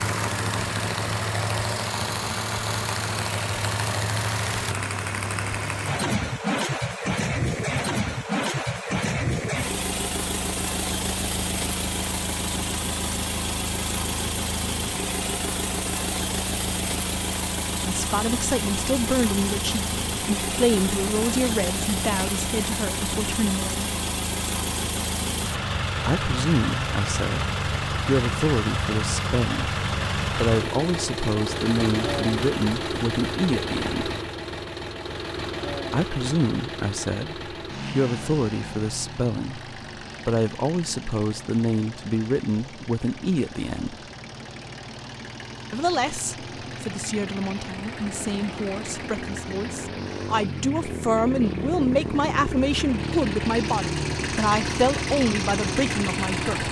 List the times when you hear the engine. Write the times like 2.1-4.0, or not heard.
0.0-56.6.